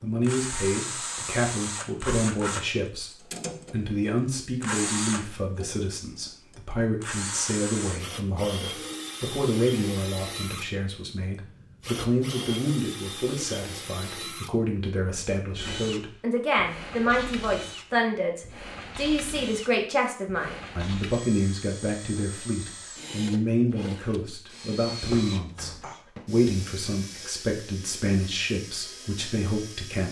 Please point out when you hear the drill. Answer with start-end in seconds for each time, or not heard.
0.2-30.0.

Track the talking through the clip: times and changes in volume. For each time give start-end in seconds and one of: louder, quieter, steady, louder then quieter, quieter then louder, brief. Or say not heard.
0.0-30.0 steady.